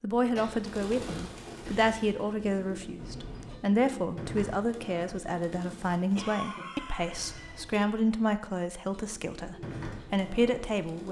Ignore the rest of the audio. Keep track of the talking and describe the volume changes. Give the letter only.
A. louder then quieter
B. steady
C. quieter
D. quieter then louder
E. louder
B.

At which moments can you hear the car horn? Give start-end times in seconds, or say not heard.
3.0-3.6, 7.0-7.8.